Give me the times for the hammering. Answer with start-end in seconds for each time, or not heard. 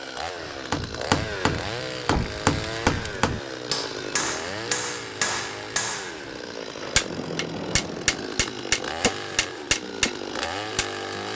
0.3-11.2.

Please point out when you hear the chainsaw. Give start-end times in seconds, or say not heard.
0.0-11.3.